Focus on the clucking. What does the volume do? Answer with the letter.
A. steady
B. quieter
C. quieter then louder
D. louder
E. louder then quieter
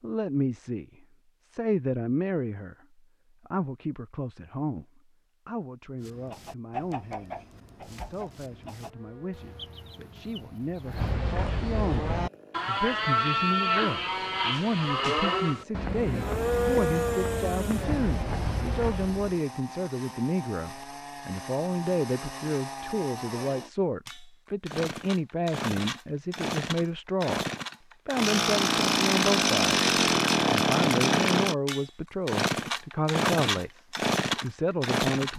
B.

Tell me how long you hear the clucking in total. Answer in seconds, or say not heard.
5 s.